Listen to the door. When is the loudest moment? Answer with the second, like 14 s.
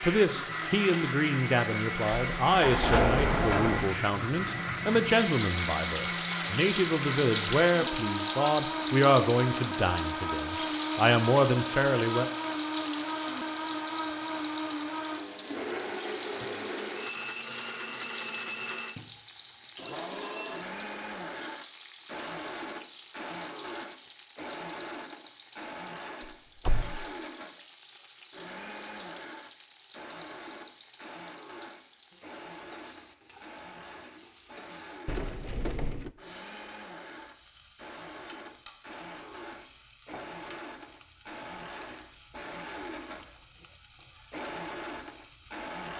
3 s.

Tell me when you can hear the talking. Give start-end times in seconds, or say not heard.
0.0-12.3.